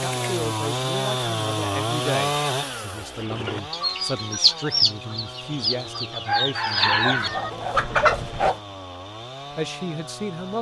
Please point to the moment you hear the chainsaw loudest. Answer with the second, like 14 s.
2 s.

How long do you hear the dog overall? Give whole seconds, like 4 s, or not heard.
2 s.